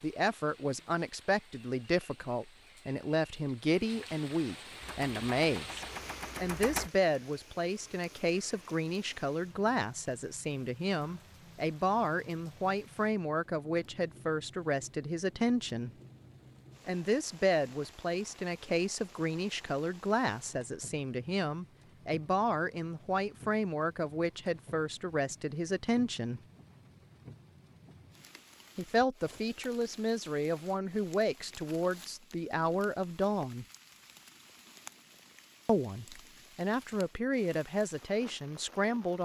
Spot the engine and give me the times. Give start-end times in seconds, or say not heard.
4.8-6.9.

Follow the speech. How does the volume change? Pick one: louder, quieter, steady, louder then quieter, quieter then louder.
steady.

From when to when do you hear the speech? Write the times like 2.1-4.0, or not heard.
0.0-15.9, 16.9-26.4, 28.8-33.6, 35.6-39.1.